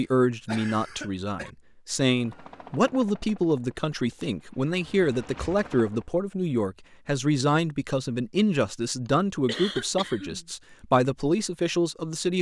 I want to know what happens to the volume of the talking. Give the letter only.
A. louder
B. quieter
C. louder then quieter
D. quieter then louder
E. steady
E.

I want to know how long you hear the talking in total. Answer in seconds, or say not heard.
12 s.